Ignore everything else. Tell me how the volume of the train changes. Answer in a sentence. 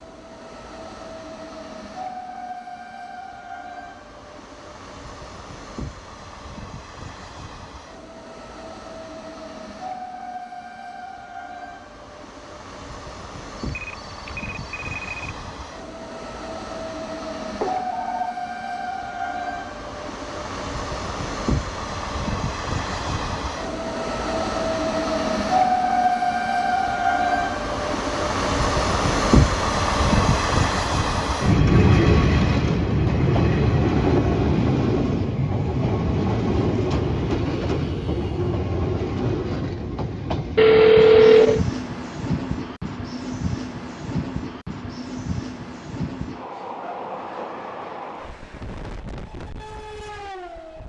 The loudness of the train goes up, then down.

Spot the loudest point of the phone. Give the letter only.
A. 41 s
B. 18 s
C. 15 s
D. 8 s
A.